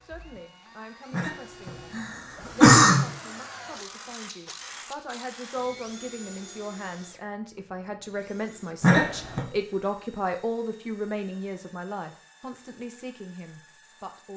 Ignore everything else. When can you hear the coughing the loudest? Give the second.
3 s.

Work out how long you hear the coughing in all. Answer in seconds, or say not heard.
3 s.